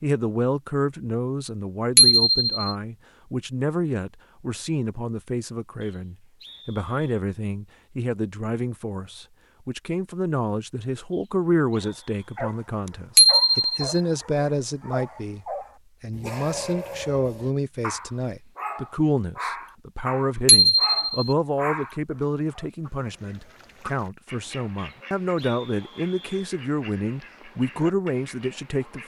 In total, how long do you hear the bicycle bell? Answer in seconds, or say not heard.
2 s.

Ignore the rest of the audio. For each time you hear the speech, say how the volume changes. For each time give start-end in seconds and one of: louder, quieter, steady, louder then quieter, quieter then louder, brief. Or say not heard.
0.0-29.0 steady.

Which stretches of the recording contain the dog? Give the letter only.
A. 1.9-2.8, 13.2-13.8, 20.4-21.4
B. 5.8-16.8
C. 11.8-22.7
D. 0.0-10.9
C.